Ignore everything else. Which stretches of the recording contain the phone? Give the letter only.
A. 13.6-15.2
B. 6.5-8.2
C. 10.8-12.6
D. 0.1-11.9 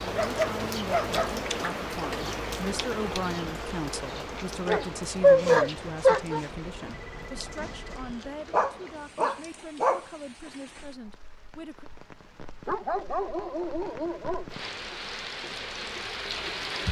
B.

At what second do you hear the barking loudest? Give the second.
5 s.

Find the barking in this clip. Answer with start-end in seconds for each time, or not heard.
0.1-1.5, 4.7-6.4, 8.5-10.1, 12.7-14.6.